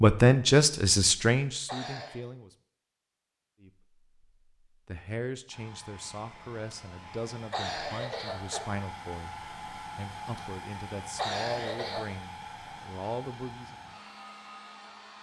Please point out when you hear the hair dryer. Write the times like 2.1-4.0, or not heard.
5.5-15.1.